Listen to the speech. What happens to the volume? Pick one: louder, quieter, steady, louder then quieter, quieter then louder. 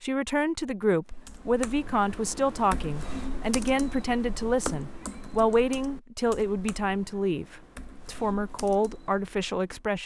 steady.